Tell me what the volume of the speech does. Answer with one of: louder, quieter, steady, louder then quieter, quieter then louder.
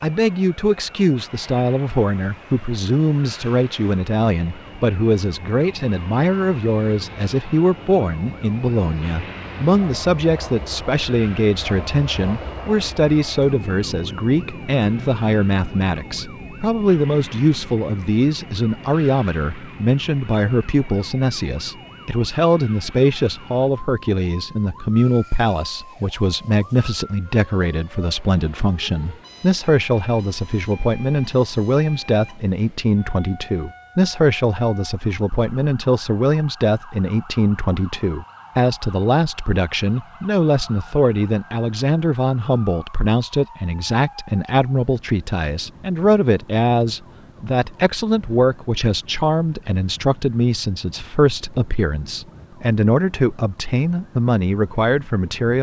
steady.